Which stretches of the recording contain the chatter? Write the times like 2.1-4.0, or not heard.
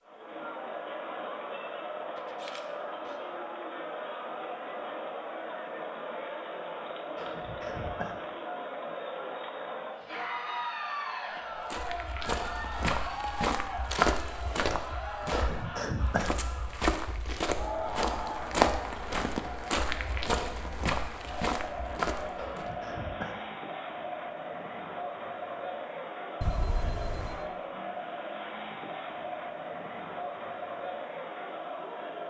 0.0-32.2.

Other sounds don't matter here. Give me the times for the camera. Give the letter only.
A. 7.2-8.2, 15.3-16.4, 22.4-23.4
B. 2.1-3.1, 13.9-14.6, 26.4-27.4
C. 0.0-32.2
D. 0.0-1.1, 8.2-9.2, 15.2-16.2
B.